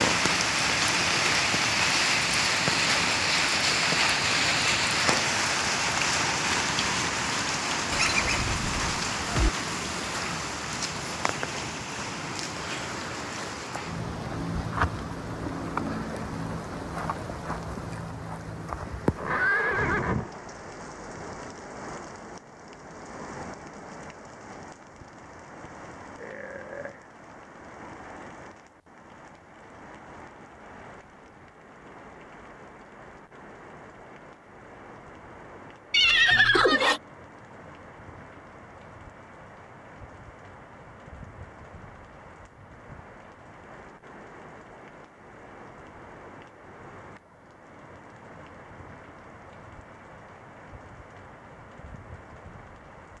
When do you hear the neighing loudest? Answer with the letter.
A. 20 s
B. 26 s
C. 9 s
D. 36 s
D.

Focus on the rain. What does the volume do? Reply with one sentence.
The loudness of the rain goes down.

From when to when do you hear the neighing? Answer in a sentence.
You can hear the neighing from 7.9 to 9.5 s, from 18.9 to 20.4 s and from 35.9 to 37.0 s.